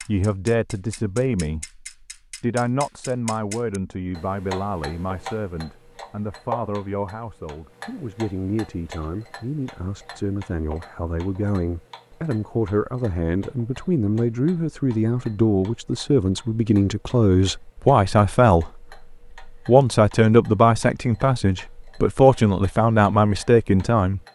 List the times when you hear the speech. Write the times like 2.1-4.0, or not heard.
0.1-24.2.